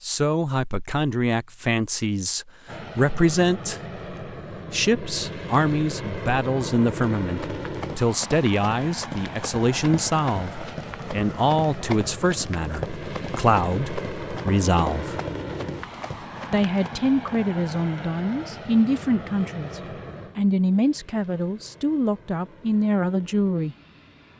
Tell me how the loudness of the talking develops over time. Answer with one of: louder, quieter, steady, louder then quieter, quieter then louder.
steady.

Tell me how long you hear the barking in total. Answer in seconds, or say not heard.
not heard.